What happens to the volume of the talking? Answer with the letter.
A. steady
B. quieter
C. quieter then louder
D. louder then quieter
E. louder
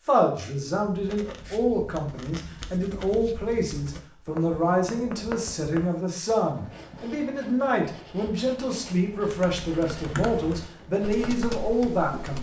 A.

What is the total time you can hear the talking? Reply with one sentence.
The talking can be heard for 12 seconds in total.